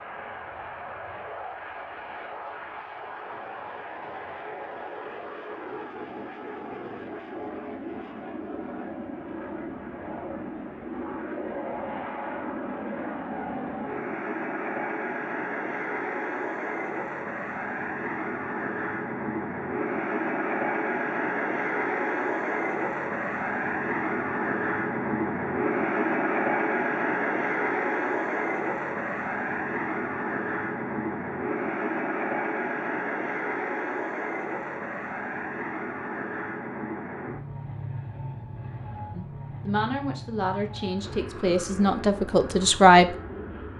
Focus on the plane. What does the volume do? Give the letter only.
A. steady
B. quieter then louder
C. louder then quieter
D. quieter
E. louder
C.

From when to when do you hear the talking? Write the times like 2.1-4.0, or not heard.
39.1-43.1.